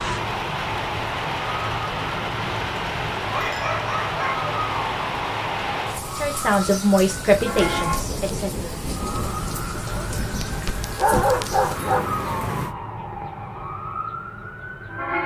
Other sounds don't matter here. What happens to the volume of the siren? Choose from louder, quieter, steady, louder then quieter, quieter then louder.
steady.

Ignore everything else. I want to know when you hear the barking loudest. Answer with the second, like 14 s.
11 s.